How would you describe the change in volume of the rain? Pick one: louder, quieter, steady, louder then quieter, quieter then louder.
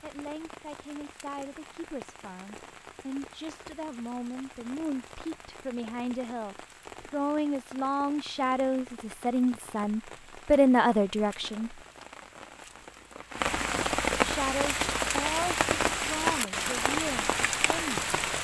louder.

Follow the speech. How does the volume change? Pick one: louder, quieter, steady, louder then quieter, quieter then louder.
louder then quieter.